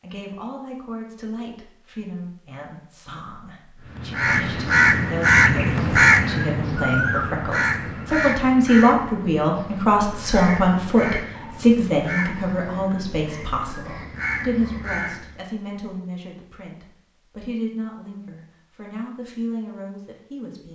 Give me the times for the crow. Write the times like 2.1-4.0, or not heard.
3.9-15.4.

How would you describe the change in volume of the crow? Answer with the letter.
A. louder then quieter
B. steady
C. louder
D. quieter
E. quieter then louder
D.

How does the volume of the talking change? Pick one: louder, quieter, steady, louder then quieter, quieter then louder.
louder then quieter.